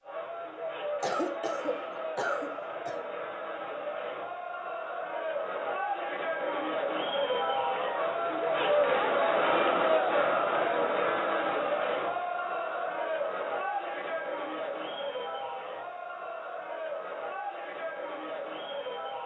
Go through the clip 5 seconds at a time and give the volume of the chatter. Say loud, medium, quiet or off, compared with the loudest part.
medium, loud, loud, medium.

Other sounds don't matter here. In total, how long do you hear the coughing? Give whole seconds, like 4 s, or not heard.
2 s.